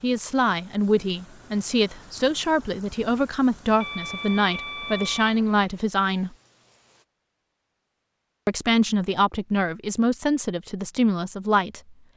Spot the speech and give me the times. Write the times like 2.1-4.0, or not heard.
0.0-6.3, 8.4-11.9.